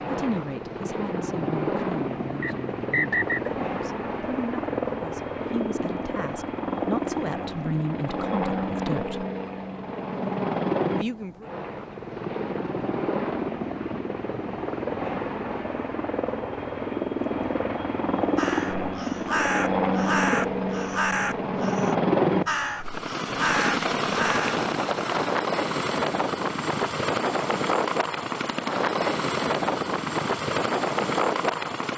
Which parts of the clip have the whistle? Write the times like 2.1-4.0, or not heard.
2.4-3.5.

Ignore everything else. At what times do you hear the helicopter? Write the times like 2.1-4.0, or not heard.
0.0-31.9.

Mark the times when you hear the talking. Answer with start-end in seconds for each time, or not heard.
0.1-9.2, 10.9-11.5.